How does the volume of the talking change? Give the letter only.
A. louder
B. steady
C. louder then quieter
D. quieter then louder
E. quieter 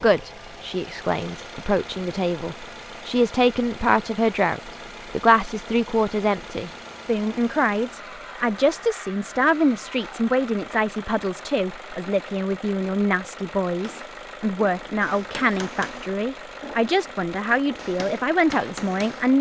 B.